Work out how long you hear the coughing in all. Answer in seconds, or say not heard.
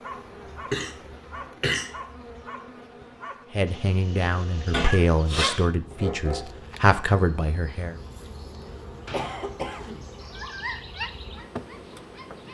4 s.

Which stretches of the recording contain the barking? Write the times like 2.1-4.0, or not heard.
0.0-6.8, 9.1-12.4.